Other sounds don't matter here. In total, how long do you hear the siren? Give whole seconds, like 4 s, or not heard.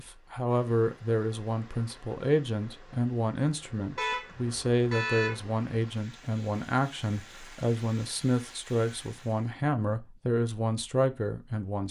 not heard.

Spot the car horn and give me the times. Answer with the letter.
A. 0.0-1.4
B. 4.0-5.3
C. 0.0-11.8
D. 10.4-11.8
B.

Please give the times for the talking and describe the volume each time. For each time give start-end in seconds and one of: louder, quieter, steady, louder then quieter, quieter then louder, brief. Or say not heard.
0.0-11.8 steady.